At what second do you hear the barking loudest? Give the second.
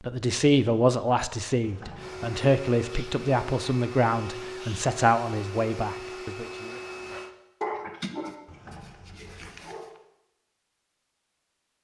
8 s.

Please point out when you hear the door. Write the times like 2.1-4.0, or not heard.
1.6-2.3, 8.4-9.8.